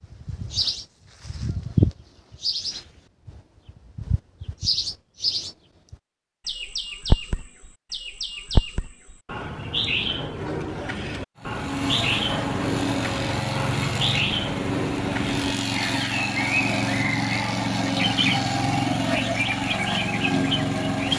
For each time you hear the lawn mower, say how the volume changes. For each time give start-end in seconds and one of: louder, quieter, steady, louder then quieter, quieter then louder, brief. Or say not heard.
11.3-21.1 steady.